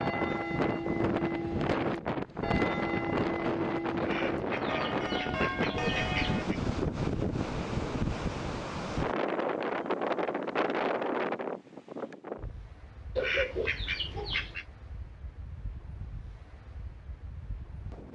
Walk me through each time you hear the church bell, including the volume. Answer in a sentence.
The church bell can be heard from 0.0 to 6.5 s, at a steady volume.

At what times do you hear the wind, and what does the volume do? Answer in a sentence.
You can hear the wind from 0.0 to 18.0 s, getting quieter.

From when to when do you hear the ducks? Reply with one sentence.
The ducks can be heard from 4.0 to 6.6 s and from 13.2 to 14.7 s.